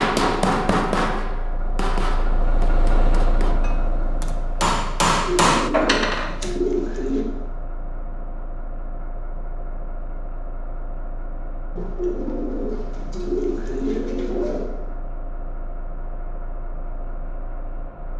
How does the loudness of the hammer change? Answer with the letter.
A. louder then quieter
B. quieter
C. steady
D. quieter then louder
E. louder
D.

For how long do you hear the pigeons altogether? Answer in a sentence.
You can hear the pigeons for 5 seconds altogether.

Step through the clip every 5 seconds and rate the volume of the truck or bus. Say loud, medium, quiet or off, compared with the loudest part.
loud, medium, medium, medium.